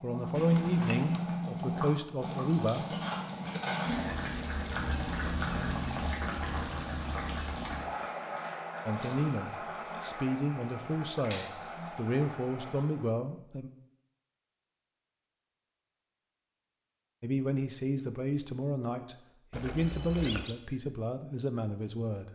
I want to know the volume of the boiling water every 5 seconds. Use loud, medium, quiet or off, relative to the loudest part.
loud, loud, medium, off, off.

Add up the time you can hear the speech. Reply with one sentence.
You can hear the speech for 13 seconds altogether.